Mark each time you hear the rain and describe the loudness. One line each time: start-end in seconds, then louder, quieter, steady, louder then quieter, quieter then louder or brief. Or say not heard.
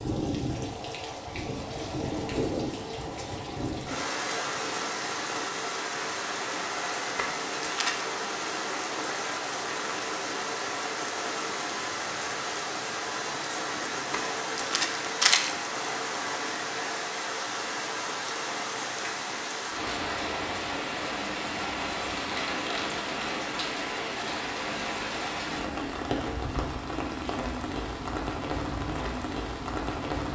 0.0-30.2 steady.